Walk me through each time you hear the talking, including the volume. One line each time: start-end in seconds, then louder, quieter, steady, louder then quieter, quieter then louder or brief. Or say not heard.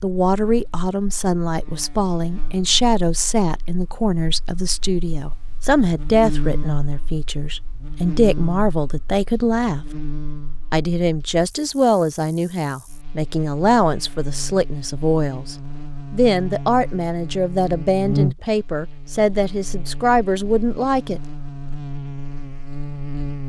0.0-9.8 steady
10.7-21.2 steady.